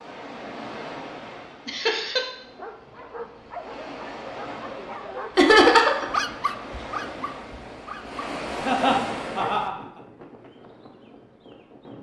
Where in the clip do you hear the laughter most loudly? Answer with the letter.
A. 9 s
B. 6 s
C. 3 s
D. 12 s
B.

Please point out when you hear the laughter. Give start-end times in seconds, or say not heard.
1.6-2.2, 5.3-6.0, 8.7-9.8.